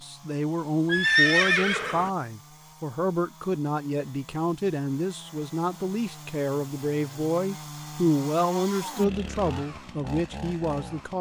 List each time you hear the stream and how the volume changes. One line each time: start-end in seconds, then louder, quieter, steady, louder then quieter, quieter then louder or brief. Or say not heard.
not heard.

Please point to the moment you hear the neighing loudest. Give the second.
1 s.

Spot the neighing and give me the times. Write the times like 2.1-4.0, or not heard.
0.9-2.1, 8.7-9.3.